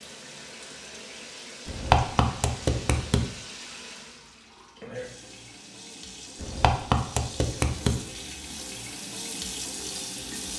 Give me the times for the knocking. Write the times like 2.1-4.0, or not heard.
1.6-3.3, 6.4-8.0.